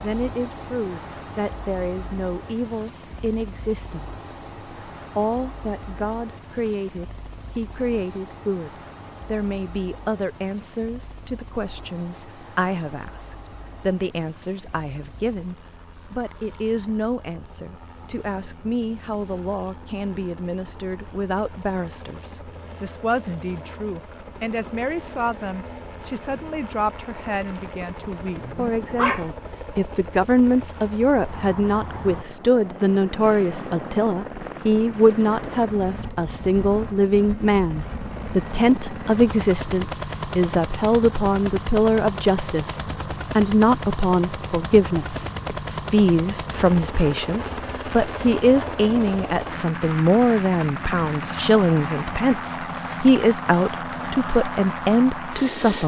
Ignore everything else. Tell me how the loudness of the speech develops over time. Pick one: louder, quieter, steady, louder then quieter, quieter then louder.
louder.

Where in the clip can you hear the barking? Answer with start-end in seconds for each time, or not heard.
28.4-29.3.